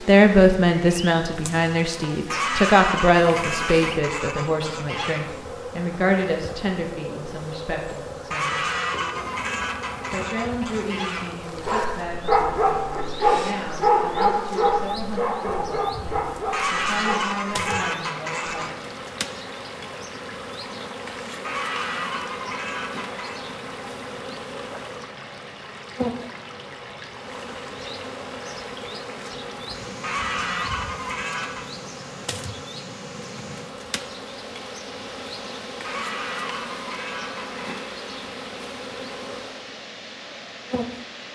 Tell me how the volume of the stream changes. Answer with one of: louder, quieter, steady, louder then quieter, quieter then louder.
steady.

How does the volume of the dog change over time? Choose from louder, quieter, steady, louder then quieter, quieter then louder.
quieter.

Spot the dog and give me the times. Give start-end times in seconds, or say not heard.
11.6-17.9.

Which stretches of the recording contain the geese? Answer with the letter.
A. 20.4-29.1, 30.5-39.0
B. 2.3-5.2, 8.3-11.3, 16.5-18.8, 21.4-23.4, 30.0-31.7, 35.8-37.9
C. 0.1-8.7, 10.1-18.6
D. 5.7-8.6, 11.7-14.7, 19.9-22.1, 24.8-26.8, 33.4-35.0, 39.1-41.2
B.